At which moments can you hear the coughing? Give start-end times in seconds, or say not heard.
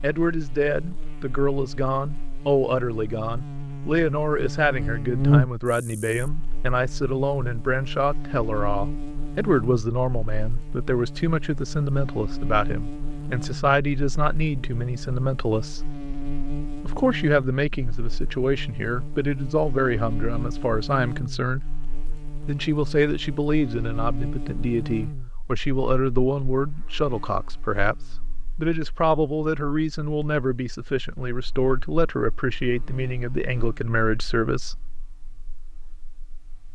not heard.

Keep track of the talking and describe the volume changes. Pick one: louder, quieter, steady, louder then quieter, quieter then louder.
steady.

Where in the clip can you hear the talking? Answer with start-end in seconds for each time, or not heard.
0.0-15.9, 16.8-21.6, 22.4-34.8.